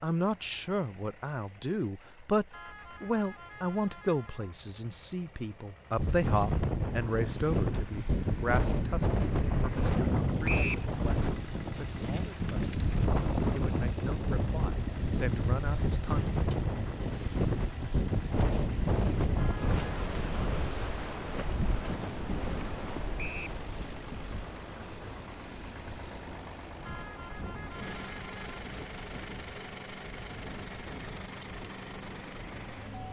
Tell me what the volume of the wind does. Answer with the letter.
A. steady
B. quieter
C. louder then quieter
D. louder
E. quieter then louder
B.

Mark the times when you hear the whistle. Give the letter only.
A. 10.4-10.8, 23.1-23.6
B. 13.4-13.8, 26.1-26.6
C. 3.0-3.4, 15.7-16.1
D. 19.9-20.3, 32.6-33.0
A.